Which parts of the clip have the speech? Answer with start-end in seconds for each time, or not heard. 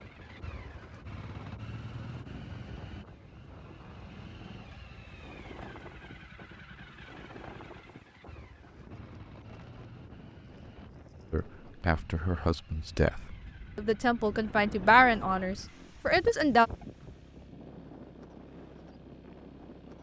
11.3-16.7.